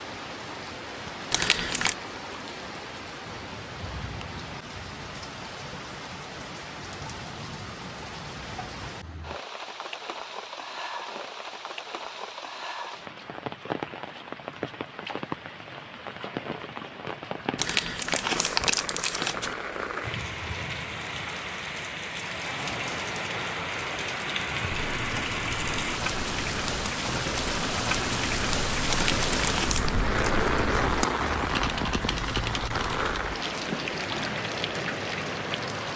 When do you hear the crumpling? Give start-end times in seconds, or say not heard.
1.3-1.9, 17.6-19.6, 28.9-29.9.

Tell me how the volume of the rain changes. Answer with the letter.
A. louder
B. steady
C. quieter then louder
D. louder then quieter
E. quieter
A.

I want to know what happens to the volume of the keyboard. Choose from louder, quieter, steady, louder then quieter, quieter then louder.
louder.